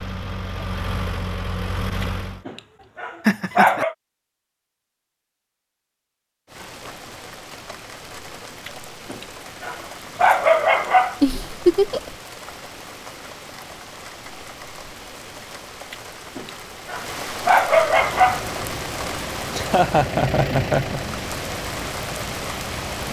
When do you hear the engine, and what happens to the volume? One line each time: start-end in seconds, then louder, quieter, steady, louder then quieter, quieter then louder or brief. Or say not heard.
0.0-2.5 brief
17.9-23.0 louder then quieter.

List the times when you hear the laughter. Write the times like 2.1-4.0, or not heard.
3.2-3.9, 11.2-12.2, 19.5-21.0.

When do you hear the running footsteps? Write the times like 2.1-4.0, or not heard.
not heard.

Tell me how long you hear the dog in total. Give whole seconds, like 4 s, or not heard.
7 s.